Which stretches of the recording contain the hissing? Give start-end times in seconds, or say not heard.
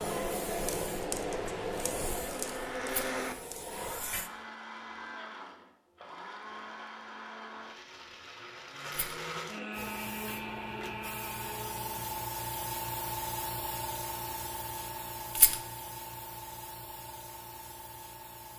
0.0-4.3, 9.7-18.5.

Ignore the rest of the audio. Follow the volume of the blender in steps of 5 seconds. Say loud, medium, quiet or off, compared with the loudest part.
loud, loud, loud, off.